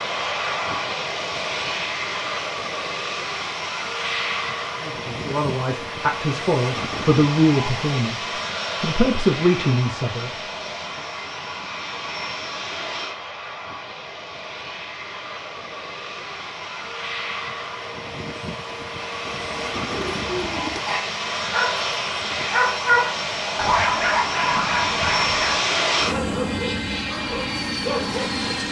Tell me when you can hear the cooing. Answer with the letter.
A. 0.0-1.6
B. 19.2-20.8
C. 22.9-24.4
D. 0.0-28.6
B.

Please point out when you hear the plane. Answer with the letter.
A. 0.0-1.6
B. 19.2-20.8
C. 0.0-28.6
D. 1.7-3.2
C.